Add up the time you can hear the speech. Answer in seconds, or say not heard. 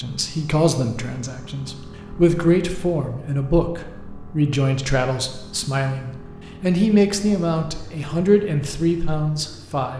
10 s.